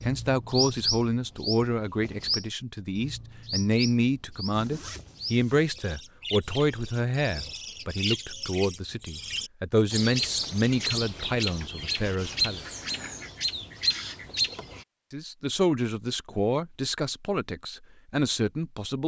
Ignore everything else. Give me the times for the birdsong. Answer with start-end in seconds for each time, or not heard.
0.0-14.8.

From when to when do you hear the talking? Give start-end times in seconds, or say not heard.
0.0-12.8, 15.1-19.0.